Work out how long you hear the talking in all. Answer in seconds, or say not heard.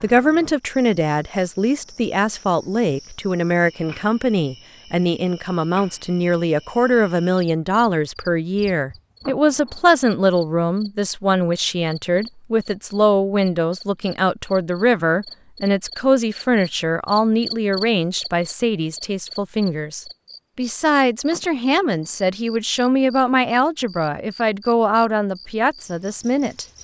27 s.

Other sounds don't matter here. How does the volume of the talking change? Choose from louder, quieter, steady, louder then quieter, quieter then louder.
steady.